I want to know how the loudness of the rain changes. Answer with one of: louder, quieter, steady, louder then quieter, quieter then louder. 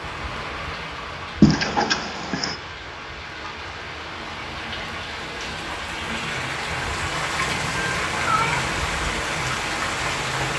louder.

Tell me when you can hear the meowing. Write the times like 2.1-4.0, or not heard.
1.4-2.5, 7.3-8.8.